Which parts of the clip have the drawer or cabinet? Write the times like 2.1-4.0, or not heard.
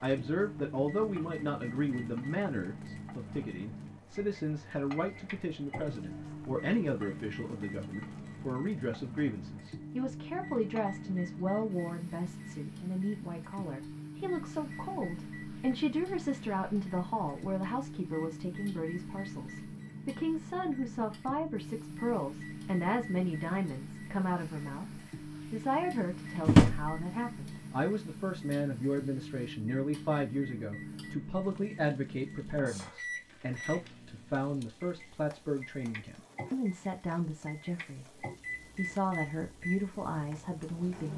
26.4-26.9.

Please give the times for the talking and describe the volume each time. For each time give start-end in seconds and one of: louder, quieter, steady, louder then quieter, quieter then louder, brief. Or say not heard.
0.0-38.0 steady
38.8-41.1 brief.